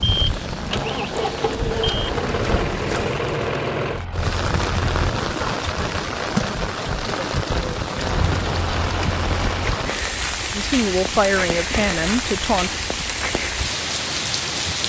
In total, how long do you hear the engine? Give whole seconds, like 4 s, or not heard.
7 s.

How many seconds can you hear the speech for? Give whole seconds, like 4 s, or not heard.
2 s.